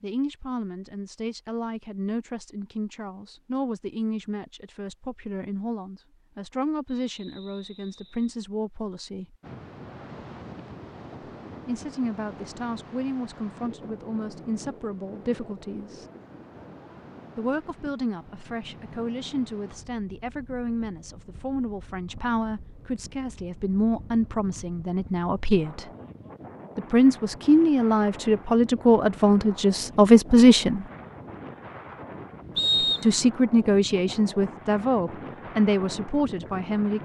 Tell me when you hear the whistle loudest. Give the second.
33 s.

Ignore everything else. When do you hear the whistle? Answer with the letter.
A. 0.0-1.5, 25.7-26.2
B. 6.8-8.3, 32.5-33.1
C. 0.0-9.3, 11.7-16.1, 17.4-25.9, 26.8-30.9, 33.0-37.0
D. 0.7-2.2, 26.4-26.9
B.